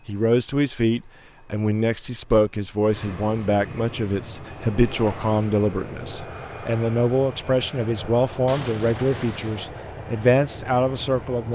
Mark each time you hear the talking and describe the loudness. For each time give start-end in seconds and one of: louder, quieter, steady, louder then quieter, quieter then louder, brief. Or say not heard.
0.1-11.4 steady.